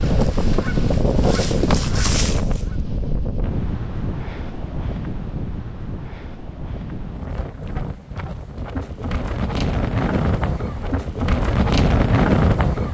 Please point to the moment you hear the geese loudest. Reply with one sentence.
The loudest moment of the geese is at 2 seconds.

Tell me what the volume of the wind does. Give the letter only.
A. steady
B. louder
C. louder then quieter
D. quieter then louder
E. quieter
D.